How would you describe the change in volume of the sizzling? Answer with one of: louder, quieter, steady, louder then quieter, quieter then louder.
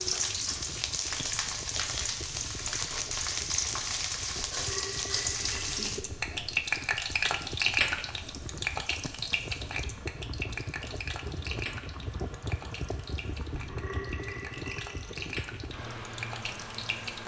quieter.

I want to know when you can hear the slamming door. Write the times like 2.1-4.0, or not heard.
not heard.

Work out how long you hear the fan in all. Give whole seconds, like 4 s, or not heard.
17 s.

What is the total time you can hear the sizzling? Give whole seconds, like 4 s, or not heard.
17 s.